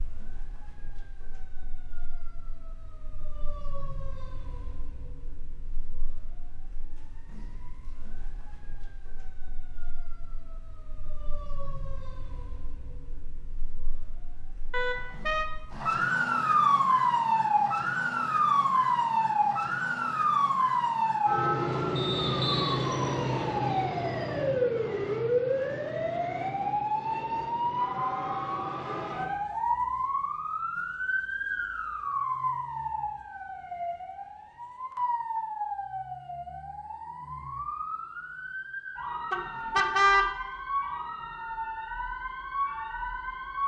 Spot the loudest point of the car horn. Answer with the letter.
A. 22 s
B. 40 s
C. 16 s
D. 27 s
B.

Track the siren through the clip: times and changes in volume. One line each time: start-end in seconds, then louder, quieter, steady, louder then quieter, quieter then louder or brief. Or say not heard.
0.0-43.6 louder then quieter.